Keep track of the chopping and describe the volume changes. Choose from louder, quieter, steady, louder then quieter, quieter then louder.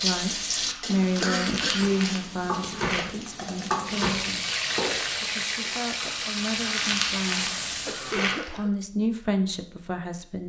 steady.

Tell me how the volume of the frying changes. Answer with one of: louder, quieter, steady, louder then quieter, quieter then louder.
quieter then louder.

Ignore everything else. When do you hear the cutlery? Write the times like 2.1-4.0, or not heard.
not heard.